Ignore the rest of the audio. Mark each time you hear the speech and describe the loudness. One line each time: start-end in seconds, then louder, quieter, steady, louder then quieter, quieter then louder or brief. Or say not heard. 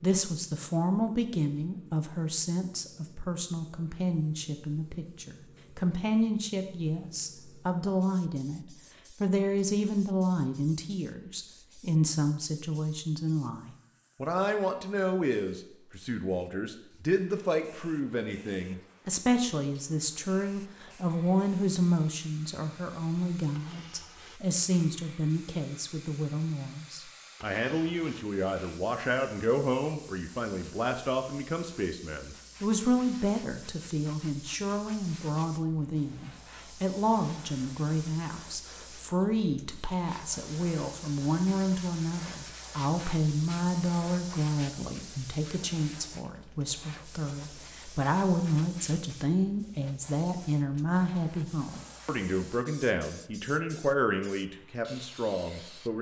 0.0-55.9 steady.